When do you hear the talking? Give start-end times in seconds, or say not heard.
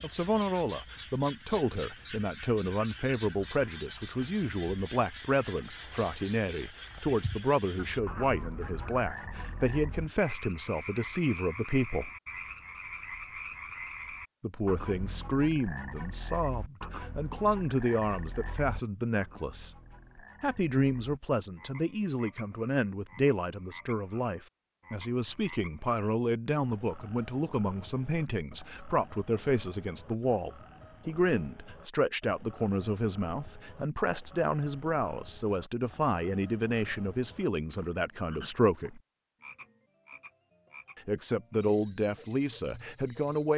0.0-12.1, 14.4-19.8, 20.4-39.0, 41.0-43.5.